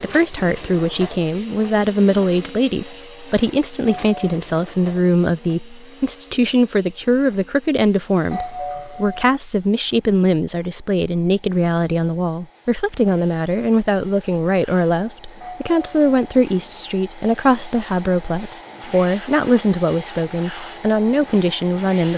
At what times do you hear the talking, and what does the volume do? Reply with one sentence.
You can hear the talking from 0.0 to 22.1 s, at a steady volume.